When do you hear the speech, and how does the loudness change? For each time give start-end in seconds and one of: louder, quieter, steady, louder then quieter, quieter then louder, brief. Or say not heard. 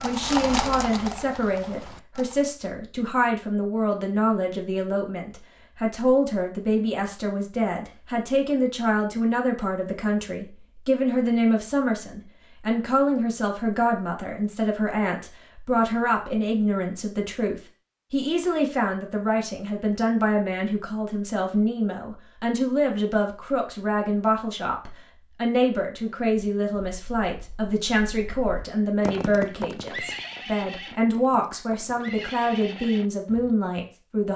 0.0-34.3 steady.